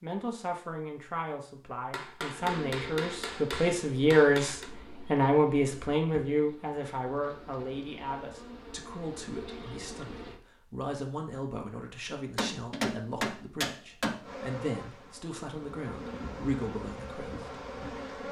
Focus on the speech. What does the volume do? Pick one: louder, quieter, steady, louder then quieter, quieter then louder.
louder then quieter.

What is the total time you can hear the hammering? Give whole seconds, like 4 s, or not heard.
5 s.